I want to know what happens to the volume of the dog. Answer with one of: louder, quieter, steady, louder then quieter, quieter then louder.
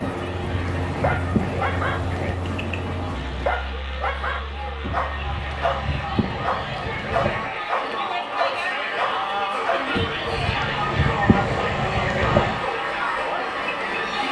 steady.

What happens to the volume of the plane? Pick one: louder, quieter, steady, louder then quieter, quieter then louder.
quieter.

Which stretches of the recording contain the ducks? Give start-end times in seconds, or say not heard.
0.0-2.4, 4.8-7.5, 9.9-12.7.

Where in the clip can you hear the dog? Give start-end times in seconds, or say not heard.
0.4-9.8.